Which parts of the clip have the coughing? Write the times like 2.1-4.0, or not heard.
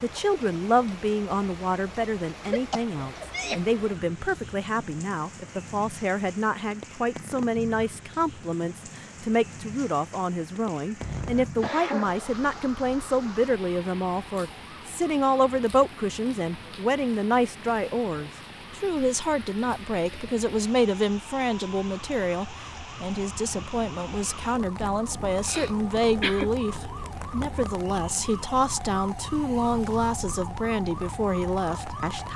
2.5-3.7, 11.0-12.3, 25.3-26.5.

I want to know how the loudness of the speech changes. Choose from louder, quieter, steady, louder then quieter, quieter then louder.
steady.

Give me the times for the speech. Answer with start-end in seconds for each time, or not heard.
0.0-32.3.